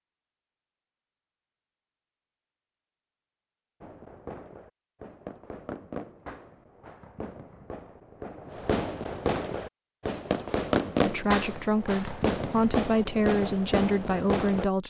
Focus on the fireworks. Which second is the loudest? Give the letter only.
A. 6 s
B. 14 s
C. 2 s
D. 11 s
D.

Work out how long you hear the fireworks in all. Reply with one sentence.
You can hear the fireworks for 11 seconds altogether.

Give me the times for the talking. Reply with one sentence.
You can hear the talking from 11.0 to 14.8 s.